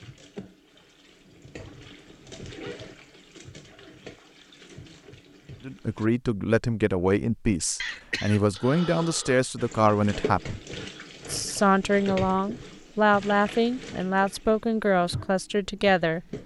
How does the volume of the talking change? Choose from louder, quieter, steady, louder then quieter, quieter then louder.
steady.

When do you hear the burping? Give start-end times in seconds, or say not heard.
not heard.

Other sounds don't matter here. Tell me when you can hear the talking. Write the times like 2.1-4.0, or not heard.
5.7-10.6, 11.2-16.2.